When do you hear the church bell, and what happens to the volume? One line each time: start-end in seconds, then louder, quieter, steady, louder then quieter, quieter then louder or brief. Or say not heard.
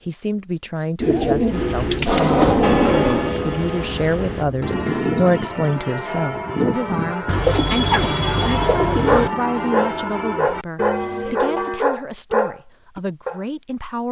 1.5-11.8 steady.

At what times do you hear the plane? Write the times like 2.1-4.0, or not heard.
2.0-4.8.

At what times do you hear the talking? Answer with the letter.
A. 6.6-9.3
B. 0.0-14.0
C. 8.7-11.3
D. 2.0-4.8
B.